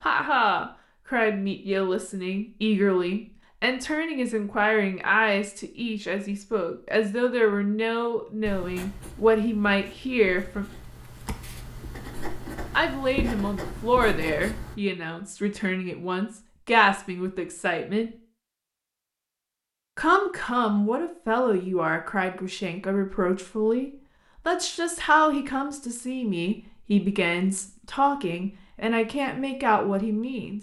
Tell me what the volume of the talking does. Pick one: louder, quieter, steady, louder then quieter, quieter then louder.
steady.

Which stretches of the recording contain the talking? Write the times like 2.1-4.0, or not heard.
0.0-10.8, 12.7-18.1, 19.9-30.5.